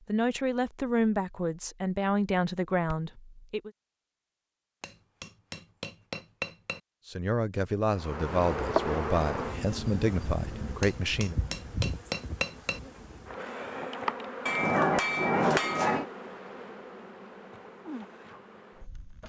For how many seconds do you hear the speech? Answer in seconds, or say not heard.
8 s.